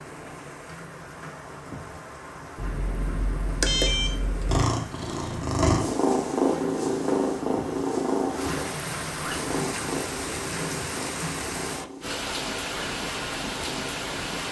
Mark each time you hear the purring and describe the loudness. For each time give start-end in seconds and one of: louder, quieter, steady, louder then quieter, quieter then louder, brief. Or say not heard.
4.5-14.4 quieter.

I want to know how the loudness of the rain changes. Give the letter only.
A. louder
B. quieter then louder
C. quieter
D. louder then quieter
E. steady
A.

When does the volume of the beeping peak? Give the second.
4 s.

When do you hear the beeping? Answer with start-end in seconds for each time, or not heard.
2.5-4.6.